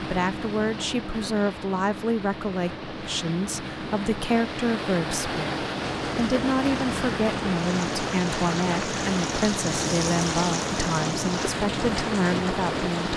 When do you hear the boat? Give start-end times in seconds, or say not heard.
0.0-13.1.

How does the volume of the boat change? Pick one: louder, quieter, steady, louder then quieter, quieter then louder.
louder.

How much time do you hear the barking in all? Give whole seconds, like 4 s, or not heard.
not heard.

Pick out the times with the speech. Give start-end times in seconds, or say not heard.
0.0-13.1.